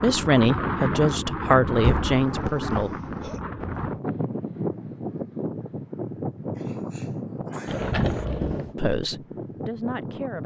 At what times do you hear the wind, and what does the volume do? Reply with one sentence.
The wind can be heard from 0.0 to 10.4 s, getting quieter.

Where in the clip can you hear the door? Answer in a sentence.
The door can be heard from 1.8 to 2.2 s and from 7.7 to 8.8 s.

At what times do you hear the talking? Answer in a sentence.
You can hear the talking from 0.0 to 2.9 s and from 8.8 to 10.4 s.